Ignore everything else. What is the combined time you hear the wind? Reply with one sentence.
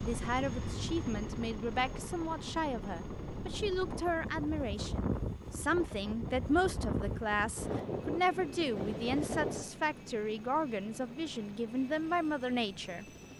The wind can be heard for 10 seconds in total.